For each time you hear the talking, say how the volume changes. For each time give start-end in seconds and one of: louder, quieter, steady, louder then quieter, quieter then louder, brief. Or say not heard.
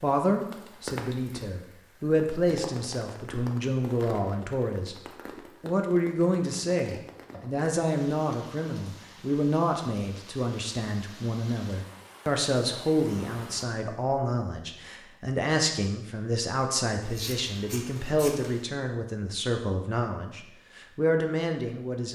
0.0-22.1 steady.